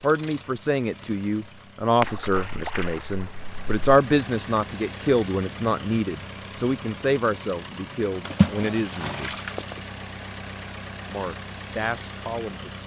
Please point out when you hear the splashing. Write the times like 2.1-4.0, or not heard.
2.0-3.8, 8.2-9.9.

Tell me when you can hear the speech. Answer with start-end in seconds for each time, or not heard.
0.0-9.4, 11.1-12.8.